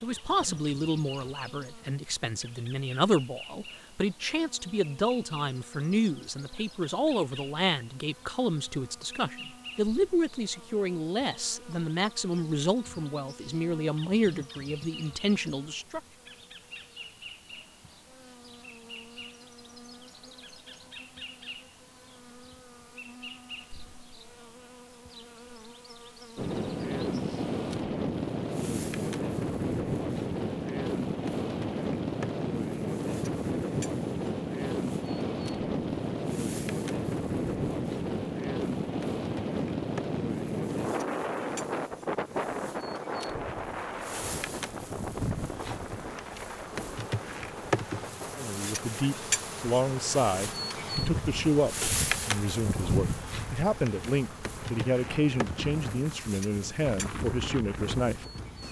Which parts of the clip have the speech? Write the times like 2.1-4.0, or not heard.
0.0-16.0, 48.4-58.2.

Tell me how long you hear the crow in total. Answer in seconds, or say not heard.
not heard.